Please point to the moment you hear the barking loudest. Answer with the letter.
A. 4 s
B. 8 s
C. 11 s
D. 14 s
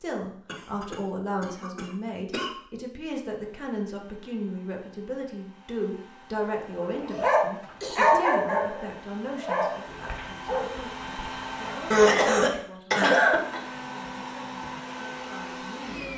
B.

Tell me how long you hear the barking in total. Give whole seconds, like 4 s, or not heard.
6 s.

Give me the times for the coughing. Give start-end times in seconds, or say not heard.
0.5-2.5, 7.8-8.2, 11.9-13.6.